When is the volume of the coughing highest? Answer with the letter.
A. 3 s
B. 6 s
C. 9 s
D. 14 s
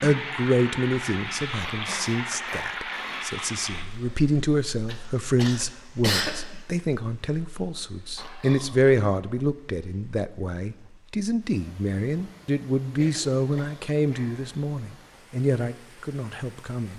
B.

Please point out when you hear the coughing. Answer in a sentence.
You can hear the coughing from 4.8 to 6.5 s and from 12.8 to 13.7 s.